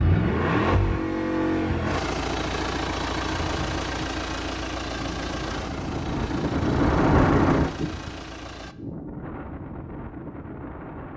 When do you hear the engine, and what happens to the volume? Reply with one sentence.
The engine can be heard from 0.0 to 8.8 s, getting quieter.